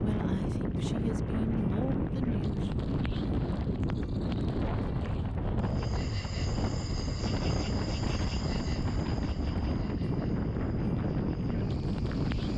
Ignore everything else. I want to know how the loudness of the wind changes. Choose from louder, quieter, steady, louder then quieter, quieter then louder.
steady.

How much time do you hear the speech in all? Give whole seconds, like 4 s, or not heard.
3 s.